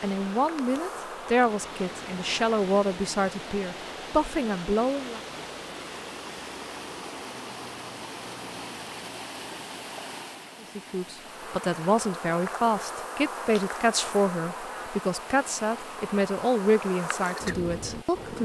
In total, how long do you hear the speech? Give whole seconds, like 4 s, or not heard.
13 s.